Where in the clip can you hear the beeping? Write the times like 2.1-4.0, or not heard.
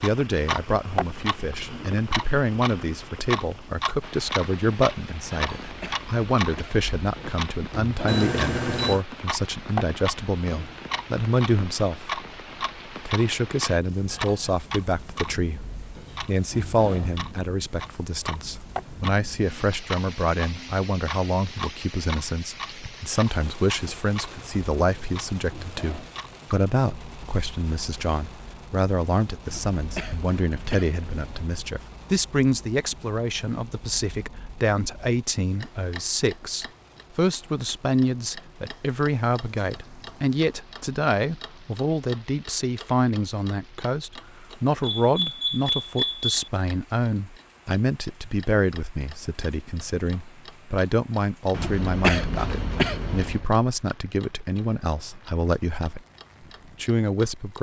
8.1-9.1, 44.8-46.3.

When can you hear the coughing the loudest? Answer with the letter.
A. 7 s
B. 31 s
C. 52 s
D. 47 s
C.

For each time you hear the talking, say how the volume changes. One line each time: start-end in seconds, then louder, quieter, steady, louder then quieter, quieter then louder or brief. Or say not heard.
0.0-12.2 steady
13.0-56.0 steady
56.8-57.5 brief.